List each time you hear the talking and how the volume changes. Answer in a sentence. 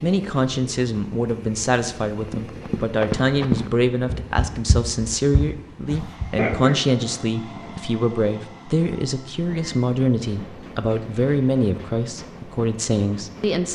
You can hear the talking from 0.0 to 13.7 s, at a steady volume.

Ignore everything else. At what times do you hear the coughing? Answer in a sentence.
The coughing can be heard from 6.3 to 7.8 s.